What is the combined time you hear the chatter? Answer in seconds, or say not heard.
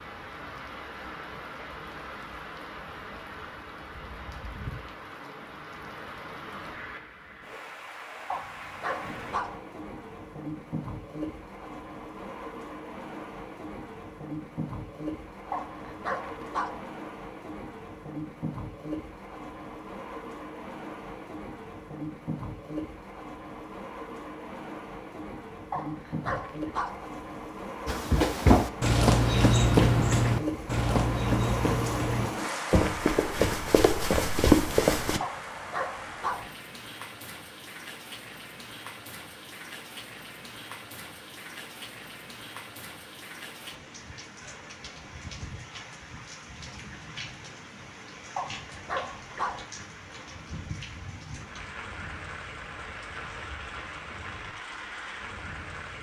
not heard.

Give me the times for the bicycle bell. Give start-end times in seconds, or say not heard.
not heard.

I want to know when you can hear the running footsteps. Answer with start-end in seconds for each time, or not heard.
27.9-35.2.